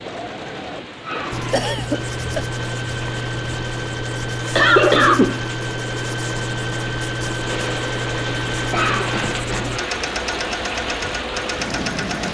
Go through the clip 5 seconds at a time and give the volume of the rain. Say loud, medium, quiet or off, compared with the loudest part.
medium, loud, loud.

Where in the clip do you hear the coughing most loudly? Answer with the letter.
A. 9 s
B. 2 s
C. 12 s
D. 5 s
D.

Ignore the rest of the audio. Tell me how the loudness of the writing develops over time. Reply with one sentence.
The loudness of the writing stays about the same.